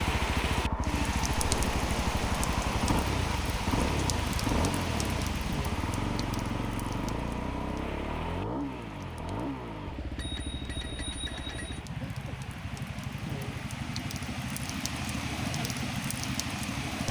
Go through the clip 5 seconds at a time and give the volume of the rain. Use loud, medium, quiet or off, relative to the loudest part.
loud, medium, medium, loud.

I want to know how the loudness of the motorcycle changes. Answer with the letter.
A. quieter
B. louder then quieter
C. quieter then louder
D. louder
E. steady
A.